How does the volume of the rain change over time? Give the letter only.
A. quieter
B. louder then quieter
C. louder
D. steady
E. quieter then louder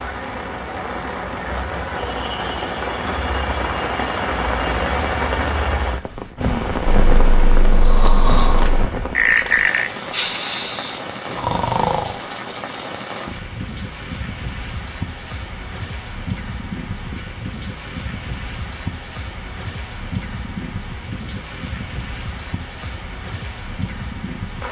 A.